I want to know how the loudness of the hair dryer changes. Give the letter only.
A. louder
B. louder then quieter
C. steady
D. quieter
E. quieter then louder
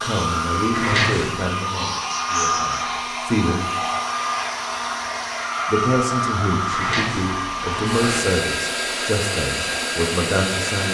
C.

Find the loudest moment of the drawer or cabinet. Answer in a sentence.
The volume of the drawer or cabinet peaks at 1 second.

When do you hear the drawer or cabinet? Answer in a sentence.
You can hear the drawer or cabinet from 0.7 to 1.4 s and from 6.7 to 8.2 s.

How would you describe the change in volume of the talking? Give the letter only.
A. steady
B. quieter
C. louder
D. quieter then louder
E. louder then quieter
A.